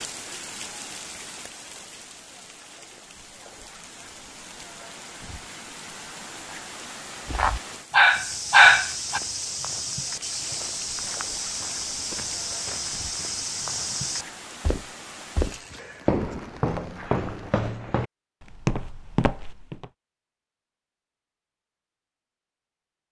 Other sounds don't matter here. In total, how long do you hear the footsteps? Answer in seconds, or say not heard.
12 s.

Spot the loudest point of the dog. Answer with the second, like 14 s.
9 s.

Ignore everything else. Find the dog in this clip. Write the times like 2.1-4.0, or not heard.
7.3-9.2.